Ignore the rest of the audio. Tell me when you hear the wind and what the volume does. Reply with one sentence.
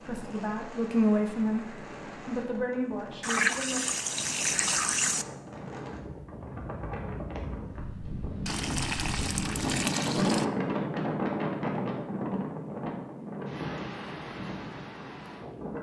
The wind can be heard from 0.0 to 15.7 s, getting louder then quieter.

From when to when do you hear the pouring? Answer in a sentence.
The pouring can be heard from 3.2 to 5.2 s and from 8.4 to 10.4 s.